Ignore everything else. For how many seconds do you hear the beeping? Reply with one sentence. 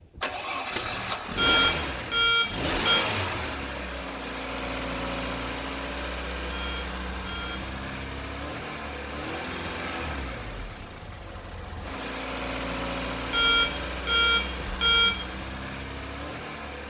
The beeping can be heard for 5 seconds in total.